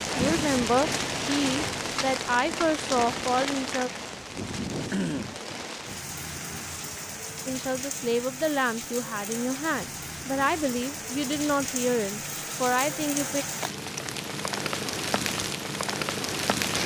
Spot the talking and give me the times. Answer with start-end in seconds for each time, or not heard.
0.1-3.9, 7.5-13.4.